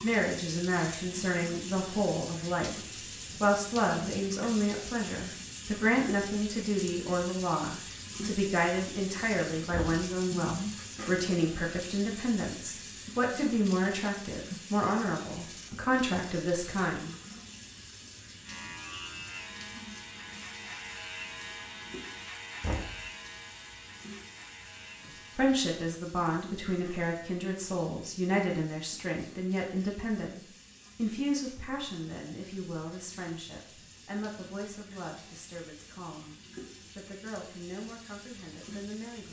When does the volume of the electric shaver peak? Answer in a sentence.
The loudest moment of the electric shaver is at 21 seconds.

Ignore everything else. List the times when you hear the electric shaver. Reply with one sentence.
You can hear the electric shaver from 18.4 to 25.6 s.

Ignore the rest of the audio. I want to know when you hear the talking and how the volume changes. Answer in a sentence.
The talking can be heard briefly from 0.0 to 2.8 s; from 3.4 to 17.1 s, at a steady volume; from 25.4 to 36.4 s, getting quieter; and briefly from 37.0 to 39.2 s.